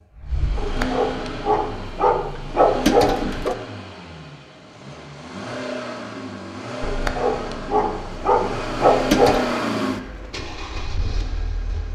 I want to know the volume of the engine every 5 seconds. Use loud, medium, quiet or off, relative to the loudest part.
medium, loud, medium.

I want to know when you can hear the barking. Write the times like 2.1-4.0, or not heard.
0.6-3.5, 6.8-9.4.